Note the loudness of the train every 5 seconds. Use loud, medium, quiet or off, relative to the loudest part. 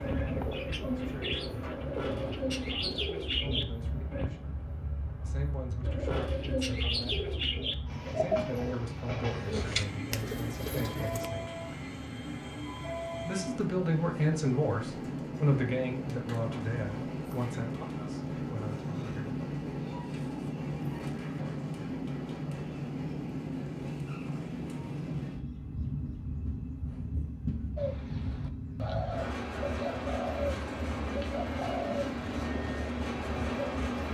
medium, medium, loud, loud, loud, loud, loud.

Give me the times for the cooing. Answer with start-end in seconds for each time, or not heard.
0.0-4.3, 5.8-11.3, 27.8-33.7.